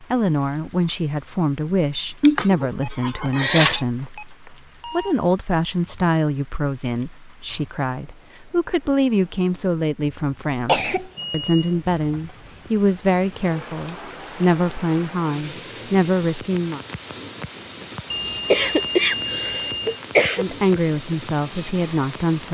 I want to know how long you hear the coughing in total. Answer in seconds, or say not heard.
4 s.